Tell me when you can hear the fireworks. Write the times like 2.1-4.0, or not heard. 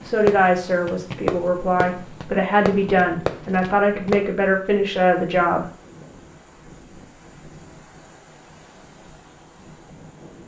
0.0-4.2.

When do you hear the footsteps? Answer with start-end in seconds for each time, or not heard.
not heard.